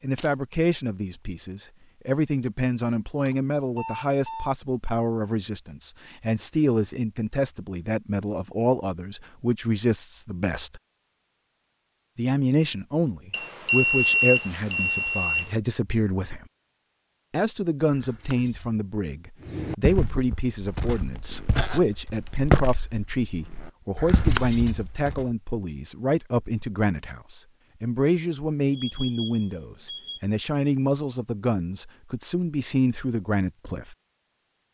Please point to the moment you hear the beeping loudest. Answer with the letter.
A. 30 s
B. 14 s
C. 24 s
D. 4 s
B.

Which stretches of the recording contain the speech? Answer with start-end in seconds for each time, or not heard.
0.0-10.8, 12.2-16.4, 17.3-34.0.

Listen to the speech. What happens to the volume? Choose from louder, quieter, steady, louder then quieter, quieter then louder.
steady.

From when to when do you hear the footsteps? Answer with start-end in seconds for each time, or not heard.
19.4-25.4.